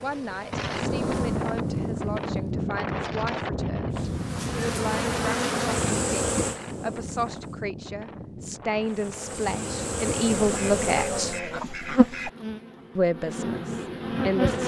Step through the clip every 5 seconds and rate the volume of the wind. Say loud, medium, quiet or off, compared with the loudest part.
loud, medium, off.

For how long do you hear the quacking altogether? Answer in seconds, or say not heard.
2 s.